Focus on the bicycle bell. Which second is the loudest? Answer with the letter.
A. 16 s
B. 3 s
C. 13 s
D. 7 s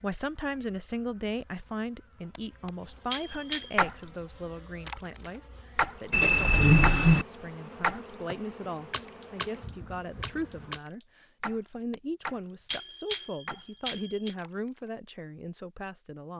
D.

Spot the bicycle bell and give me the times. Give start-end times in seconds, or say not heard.
2.4-3.9, 6.1-7.2, 11.9-14.3.